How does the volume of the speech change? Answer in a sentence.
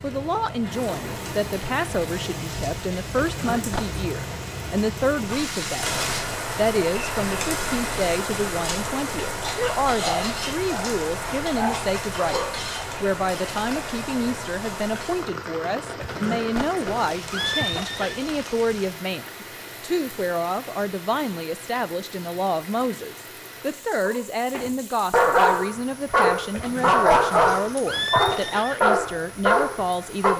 The volume of the speech stays about the same.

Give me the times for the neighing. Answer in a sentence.
The neighing can be heard from 3.1 to 4.0 s, from 15.9 to 18.2 s and from 26.5 to 28.9 s.